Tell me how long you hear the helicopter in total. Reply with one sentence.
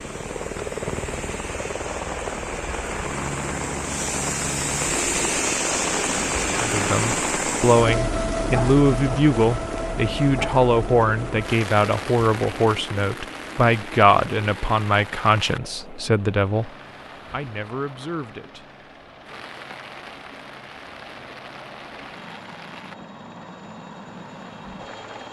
You can hear the helicopter for 25 seconds altogether.